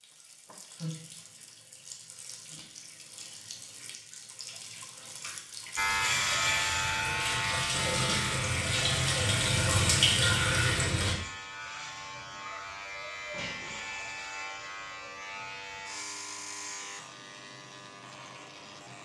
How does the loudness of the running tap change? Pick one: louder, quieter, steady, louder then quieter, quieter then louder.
louder.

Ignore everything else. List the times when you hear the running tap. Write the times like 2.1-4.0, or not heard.
0.0-11.2.